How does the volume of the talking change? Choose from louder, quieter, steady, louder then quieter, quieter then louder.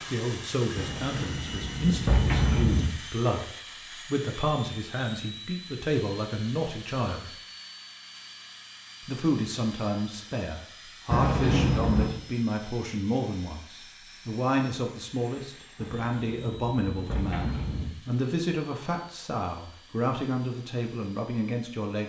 steady.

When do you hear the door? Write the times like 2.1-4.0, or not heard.
0.8-2.9, 11.1-12.1, 15.8-17.9.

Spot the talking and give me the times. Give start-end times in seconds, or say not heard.
0.1-7.3, 9.0-22.0.